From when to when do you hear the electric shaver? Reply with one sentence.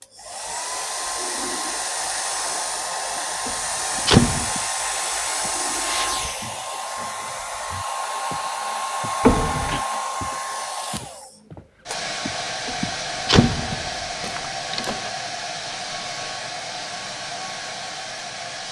You can't hear the electric shaver here.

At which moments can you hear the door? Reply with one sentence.
The door can be heard from 3.5 to 4.5 s, from 9.2 to 9.8 s, from 12.7 to 13.9 s and from 14.7 to 15.1 s.